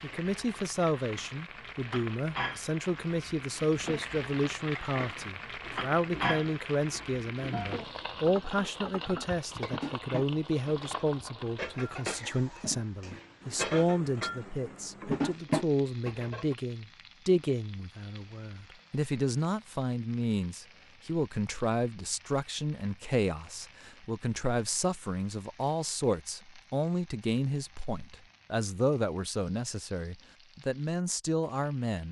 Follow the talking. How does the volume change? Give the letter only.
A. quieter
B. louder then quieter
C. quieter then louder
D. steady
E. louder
D.